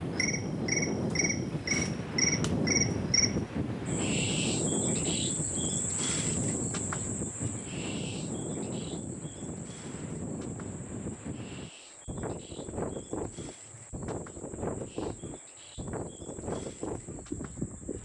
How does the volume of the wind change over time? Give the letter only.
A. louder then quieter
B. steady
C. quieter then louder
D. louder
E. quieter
E.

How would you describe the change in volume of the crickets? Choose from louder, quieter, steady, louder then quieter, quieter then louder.
quieter.